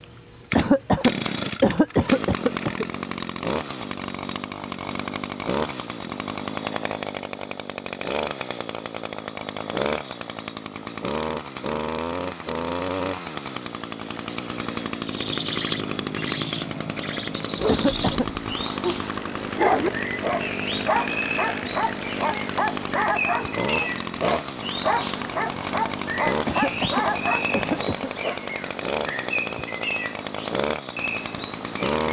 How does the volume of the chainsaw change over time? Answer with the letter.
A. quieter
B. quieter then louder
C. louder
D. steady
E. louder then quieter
D.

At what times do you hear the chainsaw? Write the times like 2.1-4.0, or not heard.
0.0-32.0.